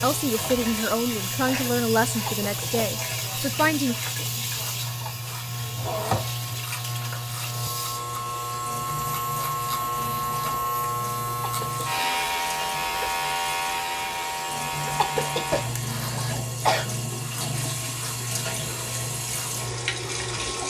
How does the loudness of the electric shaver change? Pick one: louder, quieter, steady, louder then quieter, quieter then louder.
louder then quieter.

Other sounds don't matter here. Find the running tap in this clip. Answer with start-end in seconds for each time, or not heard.
0.0-20.6.